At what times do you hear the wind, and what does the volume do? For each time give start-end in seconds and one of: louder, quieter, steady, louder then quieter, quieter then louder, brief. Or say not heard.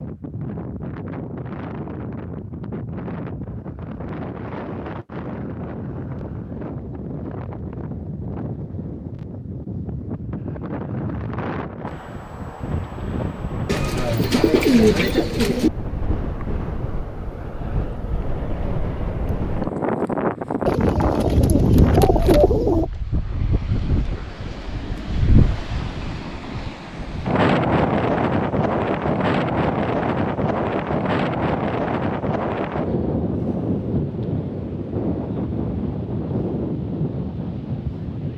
0.0-38.3 louder.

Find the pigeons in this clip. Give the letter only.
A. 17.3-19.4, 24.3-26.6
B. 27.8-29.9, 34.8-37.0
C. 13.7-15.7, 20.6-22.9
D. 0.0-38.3
C.